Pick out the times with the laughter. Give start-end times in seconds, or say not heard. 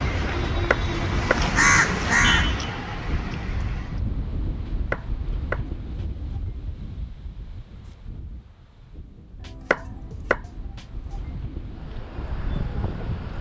not heard.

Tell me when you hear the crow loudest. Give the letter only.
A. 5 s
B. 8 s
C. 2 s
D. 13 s
C.